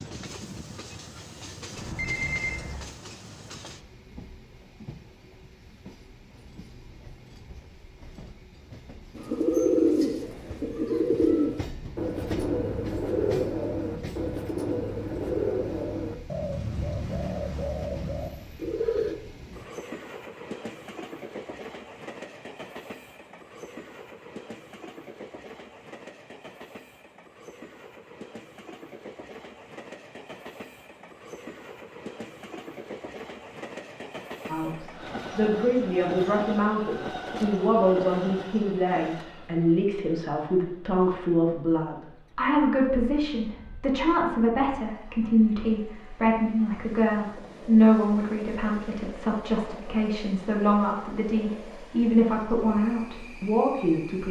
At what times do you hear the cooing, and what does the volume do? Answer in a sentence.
The cooing can be heard from 9.2 to 19.1 s, getting quieter.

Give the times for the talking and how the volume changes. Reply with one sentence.
You can hear the talking from 34.5 to 54.2 s, at a steady volume.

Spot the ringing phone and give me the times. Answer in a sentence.
The ringing phone can be heard from 1.8 to 3.0 s.